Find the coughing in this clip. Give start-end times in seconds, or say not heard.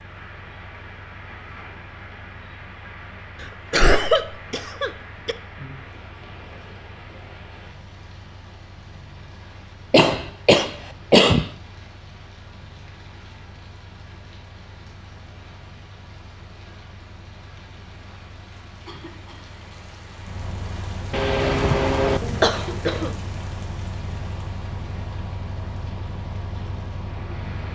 3.4-5.3, 9.9-11.5, 21.1-23.1.